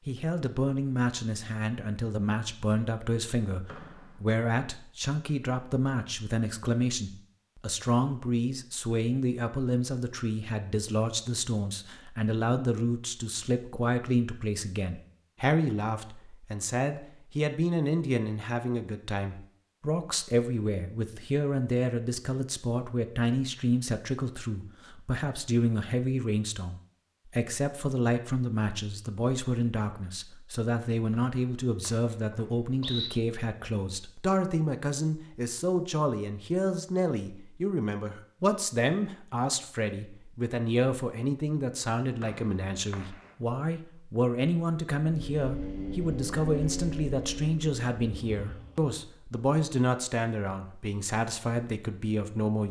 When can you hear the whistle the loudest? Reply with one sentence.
The loudest moment of the whistle is at 33 seconds.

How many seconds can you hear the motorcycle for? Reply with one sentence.
The motorcycle can be heard for 4 seconds in total.